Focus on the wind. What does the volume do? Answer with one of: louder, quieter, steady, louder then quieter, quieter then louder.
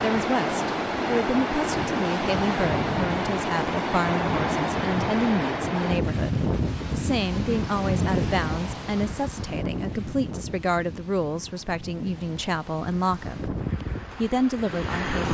quieter.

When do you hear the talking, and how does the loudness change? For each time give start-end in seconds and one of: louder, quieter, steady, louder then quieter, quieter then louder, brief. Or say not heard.
0.0-13.6 steady
14.2-15.3 brief.